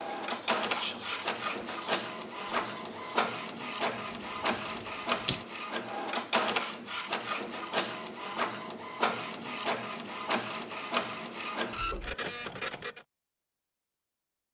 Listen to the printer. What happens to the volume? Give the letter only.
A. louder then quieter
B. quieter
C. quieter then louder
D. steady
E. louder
D.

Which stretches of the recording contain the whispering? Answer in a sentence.
You can hear the whispering from 0.0 to 3.4 s.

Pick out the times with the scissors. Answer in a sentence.
You can hear the scissors from 4.0 to 5.5 s.